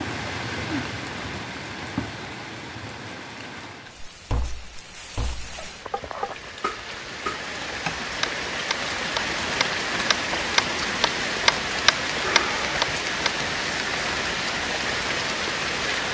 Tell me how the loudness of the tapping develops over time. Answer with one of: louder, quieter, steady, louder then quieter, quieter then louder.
louder.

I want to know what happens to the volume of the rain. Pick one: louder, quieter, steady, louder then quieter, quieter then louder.
quieter then louder.